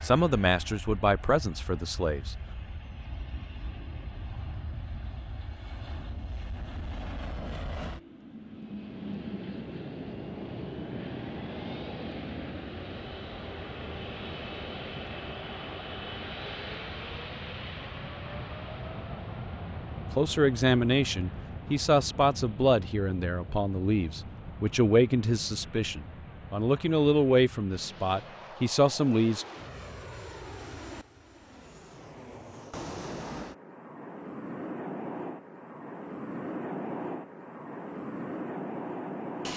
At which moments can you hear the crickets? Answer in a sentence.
You can't hear the crickets here.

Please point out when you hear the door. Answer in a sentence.
The door can't be heard in this clip.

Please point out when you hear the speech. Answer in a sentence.
The speech can be heard from 0.0 to 2.4 s and from 20.1 to 29.4 s.